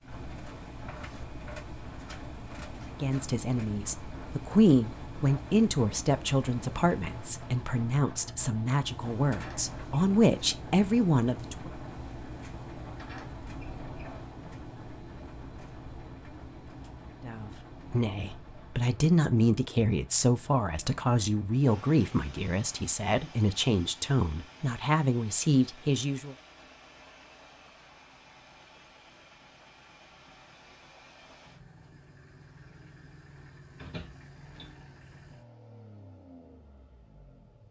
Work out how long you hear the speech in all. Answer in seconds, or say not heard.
18 s.